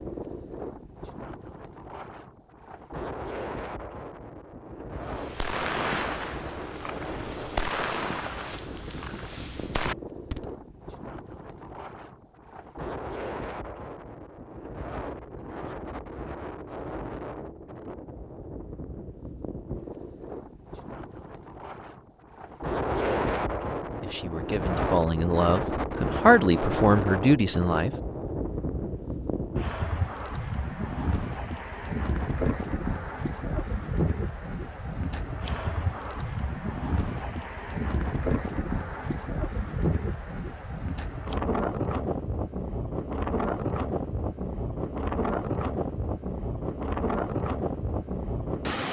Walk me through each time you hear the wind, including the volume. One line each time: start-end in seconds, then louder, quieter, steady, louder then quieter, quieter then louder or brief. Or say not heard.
0.0-48.8 louder.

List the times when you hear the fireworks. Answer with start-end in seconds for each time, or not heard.
5.0-10.6.